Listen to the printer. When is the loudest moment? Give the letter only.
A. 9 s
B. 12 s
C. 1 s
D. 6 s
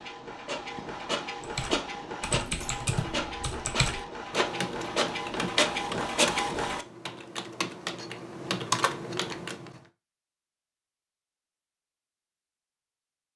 D.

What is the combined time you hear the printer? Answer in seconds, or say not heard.
7 s.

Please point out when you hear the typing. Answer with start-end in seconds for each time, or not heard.
1.4-9.8.